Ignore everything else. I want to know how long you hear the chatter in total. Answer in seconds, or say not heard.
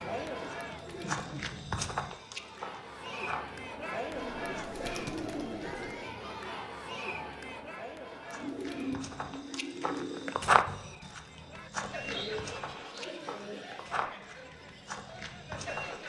16 s.